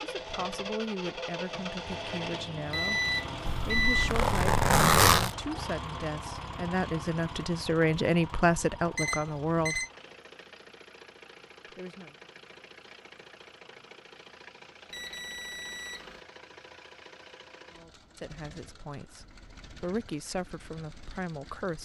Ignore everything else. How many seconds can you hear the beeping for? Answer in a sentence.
You can hear the beeping for 4 seconds altogether.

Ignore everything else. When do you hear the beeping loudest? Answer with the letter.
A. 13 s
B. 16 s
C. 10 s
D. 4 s
D.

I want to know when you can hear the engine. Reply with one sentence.
The engine can be heard from 0.0 to 21.8 s.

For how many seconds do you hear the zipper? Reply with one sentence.
The zipper can be heard for 2 seconds in total.